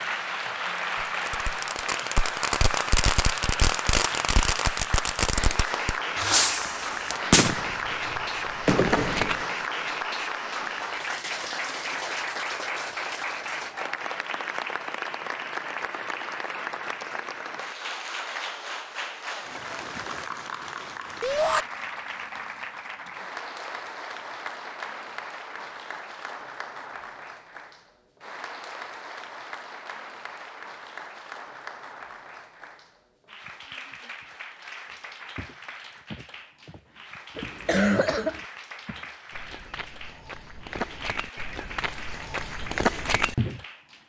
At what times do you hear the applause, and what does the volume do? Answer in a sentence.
The applause can be heard from 0.0 to 44.0 s, getting quieter.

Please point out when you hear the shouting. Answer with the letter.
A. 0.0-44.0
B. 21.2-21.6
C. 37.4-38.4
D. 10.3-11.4
B.